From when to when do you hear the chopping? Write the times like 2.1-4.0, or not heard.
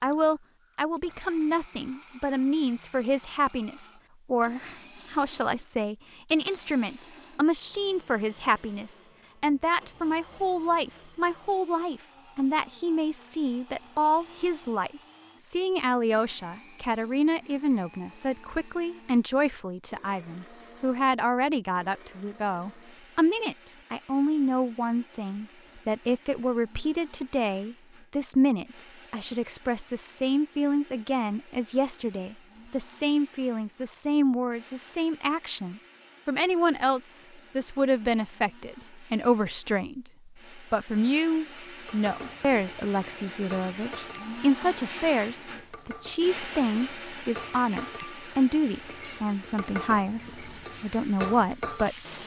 not heard.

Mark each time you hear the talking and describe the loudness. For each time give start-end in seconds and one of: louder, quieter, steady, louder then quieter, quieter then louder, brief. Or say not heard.
0.0-52.0 steady.